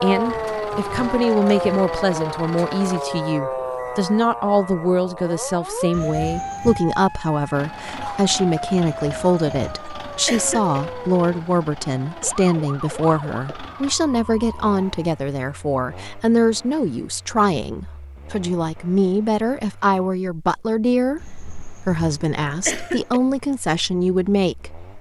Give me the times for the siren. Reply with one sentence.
The siren can be heard from 0.0 to 15.1 s.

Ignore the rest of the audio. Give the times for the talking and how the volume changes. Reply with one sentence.
You can hear the talking from 0.0 to 24.9 s, at a steady volume.